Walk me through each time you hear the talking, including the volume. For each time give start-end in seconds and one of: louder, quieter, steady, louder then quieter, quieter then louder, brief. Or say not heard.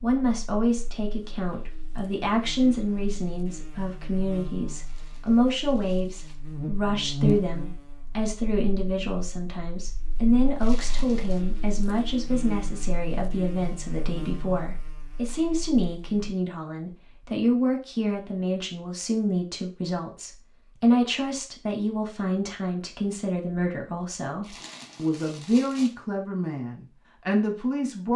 0.0-28.1 steady.